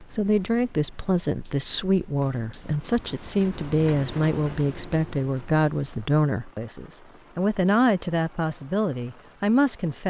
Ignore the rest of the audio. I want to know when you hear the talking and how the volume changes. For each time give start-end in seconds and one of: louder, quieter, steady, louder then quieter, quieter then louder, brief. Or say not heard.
0.0-10.0 steady.